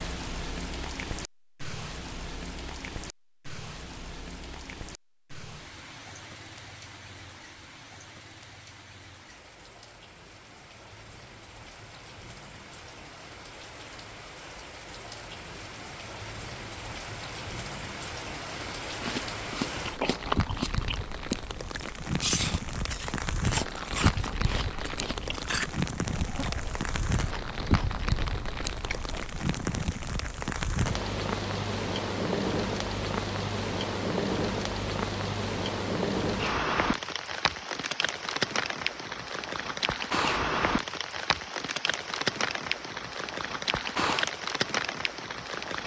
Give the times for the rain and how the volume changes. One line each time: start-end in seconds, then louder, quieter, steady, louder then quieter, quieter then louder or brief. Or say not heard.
0.0-45.8 louder.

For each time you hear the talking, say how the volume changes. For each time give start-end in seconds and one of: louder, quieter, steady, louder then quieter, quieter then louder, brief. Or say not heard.
not heard.